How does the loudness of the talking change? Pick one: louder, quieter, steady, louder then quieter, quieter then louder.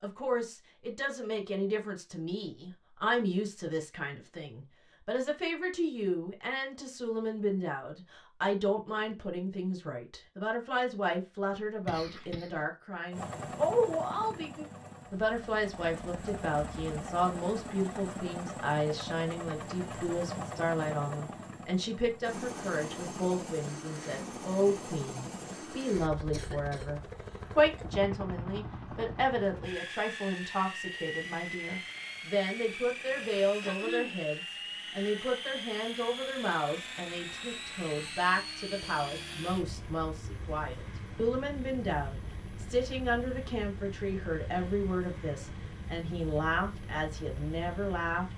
steady.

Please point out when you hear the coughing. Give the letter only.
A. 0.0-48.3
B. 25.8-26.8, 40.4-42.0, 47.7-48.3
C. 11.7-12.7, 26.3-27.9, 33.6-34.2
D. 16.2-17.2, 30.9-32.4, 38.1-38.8
C.